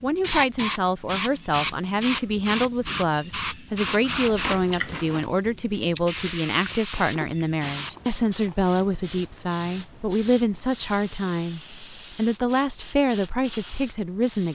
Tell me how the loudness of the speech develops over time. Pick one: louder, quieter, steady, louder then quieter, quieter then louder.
steady.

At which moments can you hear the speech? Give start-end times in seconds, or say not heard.
0.0-14.5.